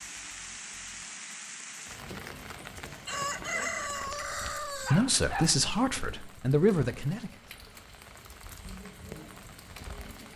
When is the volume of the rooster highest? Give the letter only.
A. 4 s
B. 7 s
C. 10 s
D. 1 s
A.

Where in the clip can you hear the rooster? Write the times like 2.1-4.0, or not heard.
2.9-5.0.